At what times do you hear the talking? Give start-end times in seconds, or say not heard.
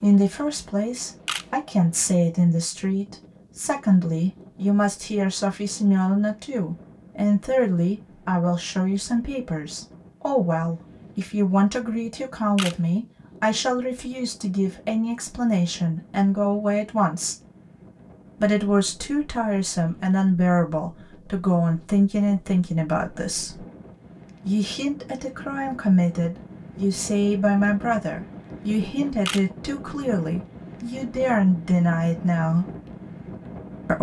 0.0-17.4, 18.4-23.6, 24.4-32.6.